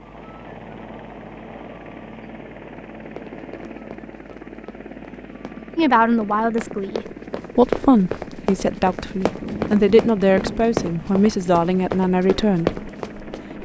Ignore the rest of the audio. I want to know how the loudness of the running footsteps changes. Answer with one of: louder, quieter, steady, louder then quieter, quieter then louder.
louder.